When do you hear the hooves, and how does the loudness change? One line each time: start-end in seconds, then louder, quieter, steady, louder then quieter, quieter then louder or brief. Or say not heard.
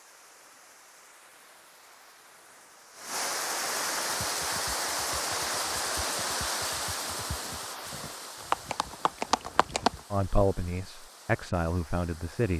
4.2-10.0 louder.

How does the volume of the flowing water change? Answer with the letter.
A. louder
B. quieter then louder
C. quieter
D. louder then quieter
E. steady
D.